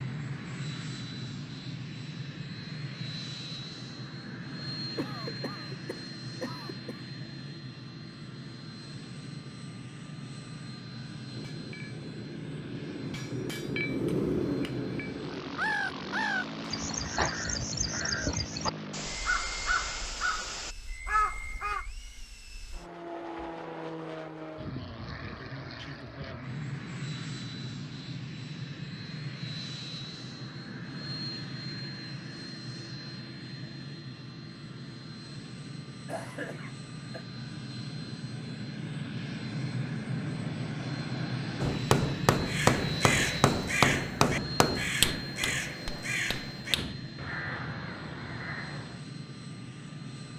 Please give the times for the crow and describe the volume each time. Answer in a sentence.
The crow can be heard from 15.6 to 21.9 s, at a steady volume; and from 42.5 to 49.0 s, getting quieter.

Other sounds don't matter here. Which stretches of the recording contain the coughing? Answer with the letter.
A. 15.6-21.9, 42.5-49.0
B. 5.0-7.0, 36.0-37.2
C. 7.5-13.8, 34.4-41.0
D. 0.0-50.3
B.